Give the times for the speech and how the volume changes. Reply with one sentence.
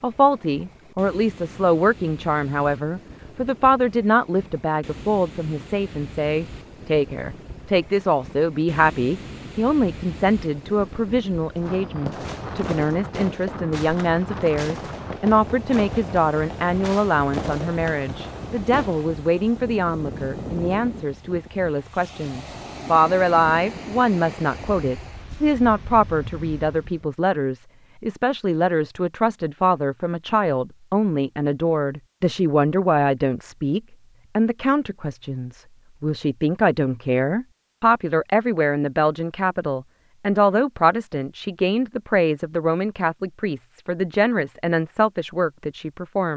You can hear the speech from 0.0 to 46.3 s, at a steady volume.